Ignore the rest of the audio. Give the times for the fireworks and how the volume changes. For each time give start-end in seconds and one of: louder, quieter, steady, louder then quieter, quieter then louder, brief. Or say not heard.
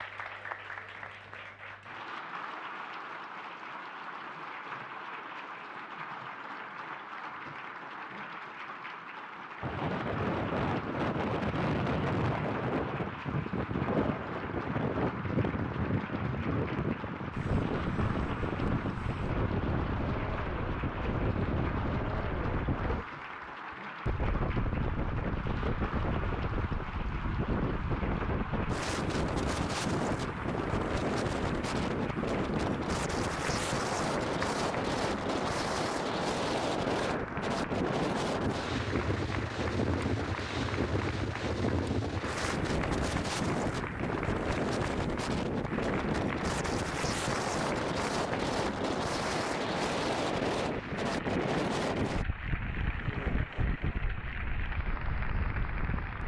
not heard.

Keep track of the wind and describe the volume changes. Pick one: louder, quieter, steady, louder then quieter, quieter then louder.
steady.